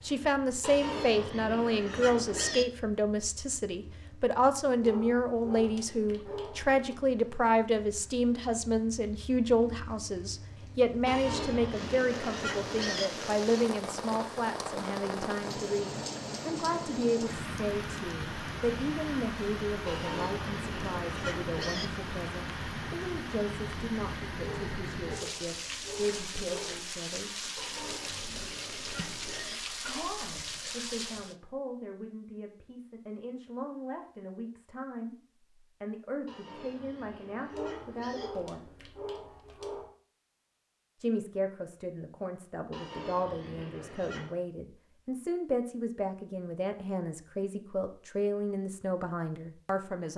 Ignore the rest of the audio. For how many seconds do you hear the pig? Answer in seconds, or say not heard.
12 s.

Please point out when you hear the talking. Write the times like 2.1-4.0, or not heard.
0.0-27.3, 29.8-35.1, 35.8-38.6, 41.0-50.1.